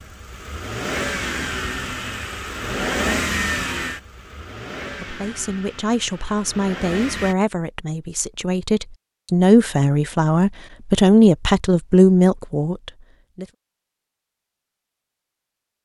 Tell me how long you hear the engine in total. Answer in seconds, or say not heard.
7 s.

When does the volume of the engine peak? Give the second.
3 s.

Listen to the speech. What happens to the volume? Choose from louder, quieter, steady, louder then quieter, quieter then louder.
louder.